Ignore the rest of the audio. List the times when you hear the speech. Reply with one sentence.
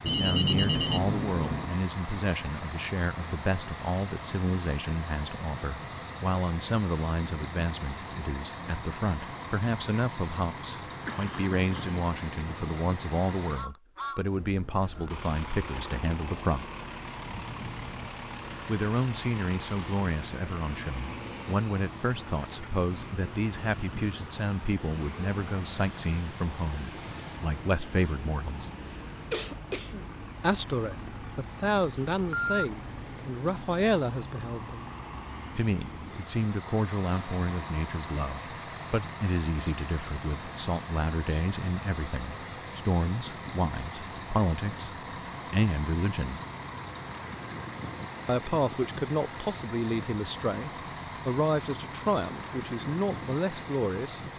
You can hear the speech from 0.0 to 16.6 s, from 18.6 to 28.7 s, from 30.4 to 34.9 s, from 35.5 to 44.9 s, from 45.5 to 46.4 s and from 48.2 to 54.2 s.